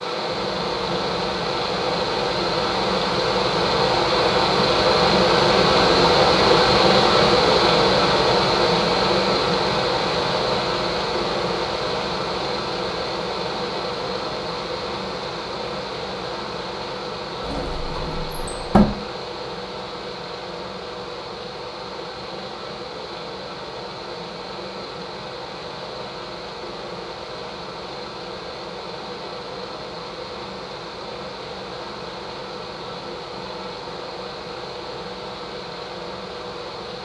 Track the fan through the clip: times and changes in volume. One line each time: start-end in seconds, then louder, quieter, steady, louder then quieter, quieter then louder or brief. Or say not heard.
0.0-37.0 quieter.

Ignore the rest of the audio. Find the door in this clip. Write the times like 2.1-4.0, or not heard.
17.4-18.9.